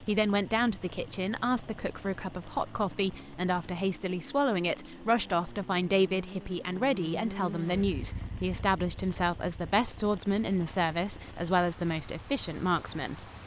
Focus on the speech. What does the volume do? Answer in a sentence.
The loudness of the speech stays about the same.